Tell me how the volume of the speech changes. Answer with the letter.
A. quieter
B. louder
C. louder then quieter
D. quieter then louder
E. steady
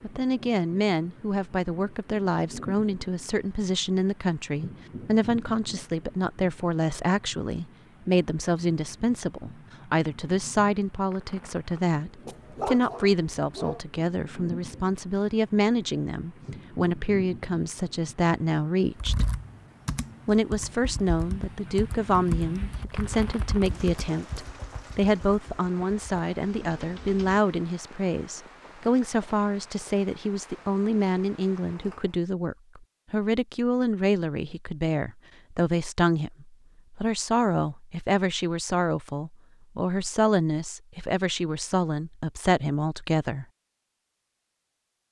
E.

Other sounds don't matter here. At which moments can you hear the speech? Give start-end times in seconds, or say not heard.
0.0-19.2, 20.2-43.5.